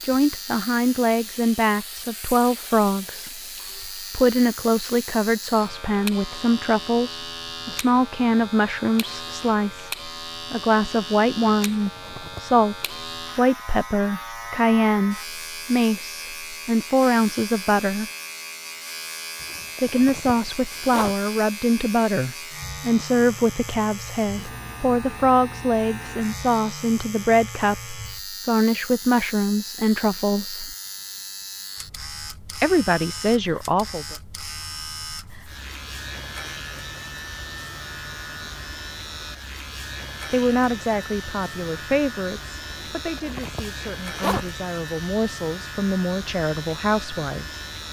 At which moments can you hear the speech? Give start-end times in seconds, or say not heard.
0.0-3.4, 4.1-12.8, 13.3-18.1, 19.8-30.8, 32.6-34.1, 40.3-47.6.